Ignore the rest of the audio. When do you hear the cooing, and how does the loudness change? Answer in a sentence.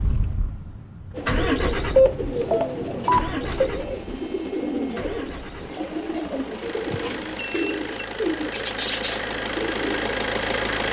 You can hear the cooing from 1.1 to 10.1 s, at a steady volume.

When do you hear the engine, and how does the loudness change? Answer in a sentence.
The engine can be heard from 0.0 to 10.8 s, getting quieter then louder.